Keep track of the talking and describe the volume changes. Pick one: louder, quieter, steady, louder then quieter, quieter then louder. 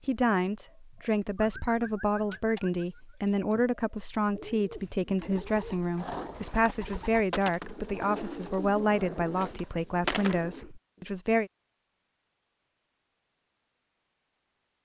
steady.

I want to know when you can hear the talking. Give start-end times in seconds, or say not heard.
0.1-11.5.